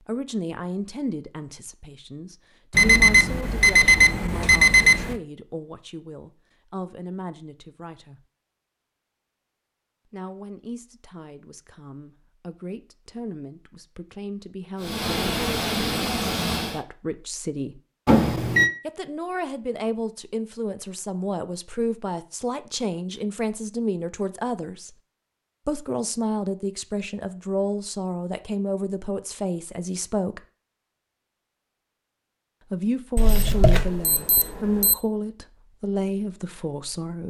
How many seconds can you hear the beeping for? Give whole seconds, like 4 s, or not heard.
5 s.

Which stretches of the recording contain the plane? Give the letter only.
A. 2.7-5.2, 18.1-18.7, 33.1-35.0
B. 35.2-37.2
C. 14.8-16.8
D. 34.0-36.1
C.